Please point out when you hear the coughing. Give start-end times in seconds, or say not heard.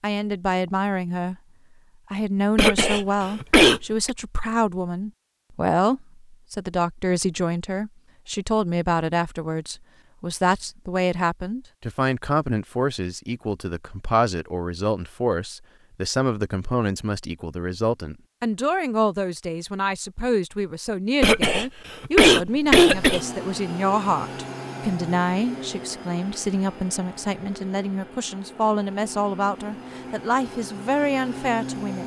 2.5-4.1, 21.2-23.2.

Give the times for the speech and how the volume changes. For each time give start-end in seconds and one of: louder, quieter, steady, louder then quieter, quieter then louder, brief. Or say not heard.
0.0-1.4 brief
2.1-32.0 steady.